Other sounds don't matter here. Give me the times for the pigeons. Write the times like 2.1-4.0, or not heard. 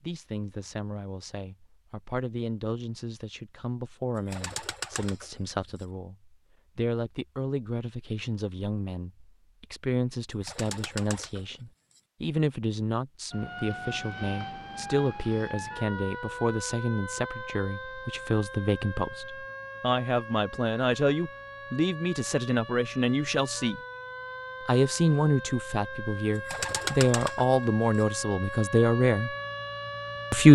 4.2-5.8, 10.3-12.0, 26.4-28.1.